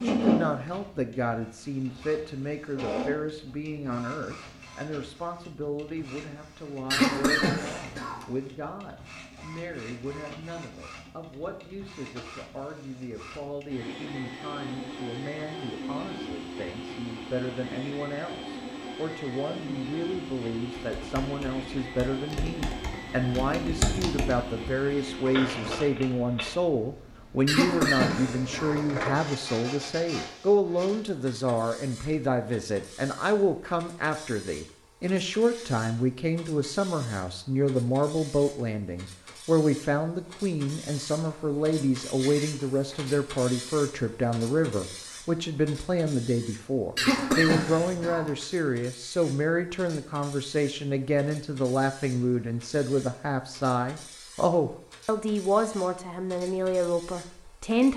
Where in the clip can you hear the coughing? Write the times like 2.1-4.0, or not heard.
6.9-8.2, 27.4-28.8, 47.0-48.3.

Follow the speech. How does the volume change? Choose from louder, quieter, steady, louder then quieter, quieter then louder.
louder.